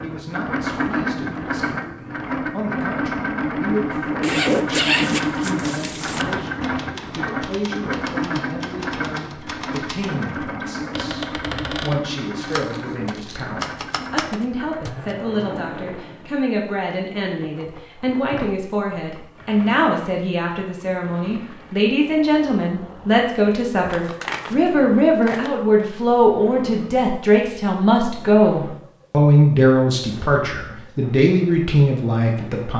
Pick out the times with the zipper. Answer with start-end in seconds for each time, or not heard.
4.2-6.2.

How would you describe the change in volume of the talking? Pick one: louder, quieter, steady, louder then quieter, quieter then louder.
louder.